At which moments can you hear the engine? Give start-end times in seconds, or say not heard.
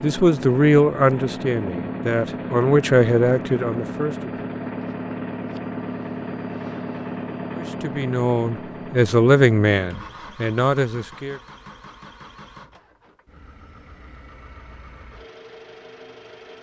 0.0-16.5.